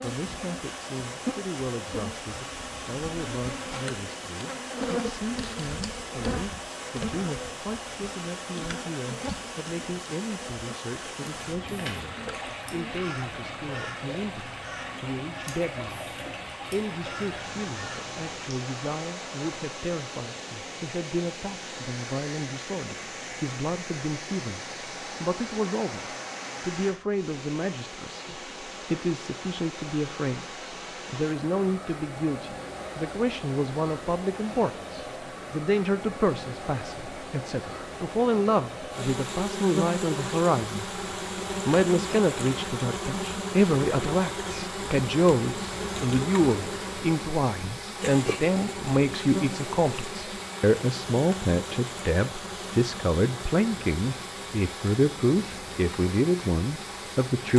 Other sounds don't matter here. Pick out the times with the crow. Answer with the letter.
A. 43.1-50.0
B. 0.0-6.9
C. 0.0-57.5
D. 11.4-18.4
D.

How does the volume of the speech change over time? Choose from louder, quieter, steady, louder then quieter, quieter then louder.
louder.